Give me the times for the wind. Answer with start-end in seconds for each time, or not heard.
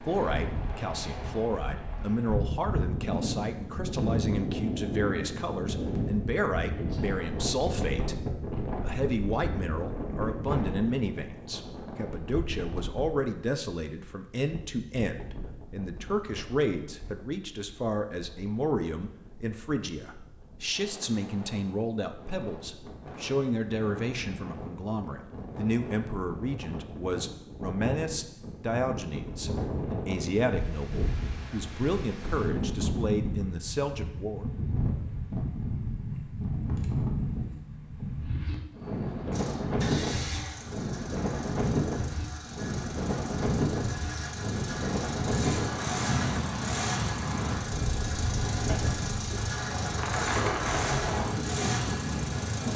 0.0-52.7.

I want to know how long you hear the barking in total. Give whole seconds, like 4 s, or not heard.
not heard.